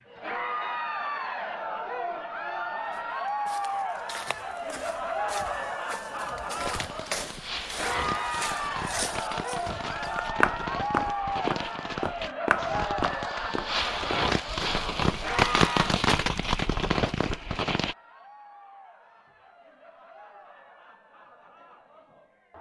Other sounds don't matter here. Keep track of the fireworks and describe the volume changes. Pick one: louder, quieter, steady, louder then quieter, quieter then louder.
louder.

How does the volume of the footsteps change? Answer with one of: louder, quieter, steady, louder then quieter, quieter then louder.
louder.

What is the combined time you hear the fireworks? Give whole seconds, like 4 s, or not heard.
11 s.